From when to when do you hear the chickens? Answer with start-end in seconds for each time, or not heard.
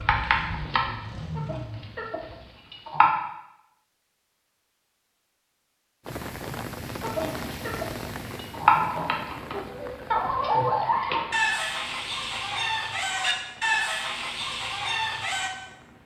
0.0-3.1, 7.0-15.5.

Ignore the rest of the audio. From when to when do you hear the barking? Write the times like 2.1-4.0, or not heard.
not heard.